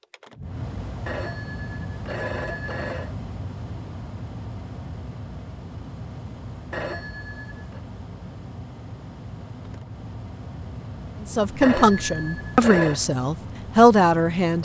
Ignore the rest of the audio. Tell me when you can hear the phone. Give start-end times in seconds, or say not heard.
1.1-3.1, 6.7-7.8, 11.6-13.0.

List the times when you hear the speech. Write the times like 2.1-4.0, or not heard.
11.2-14.5.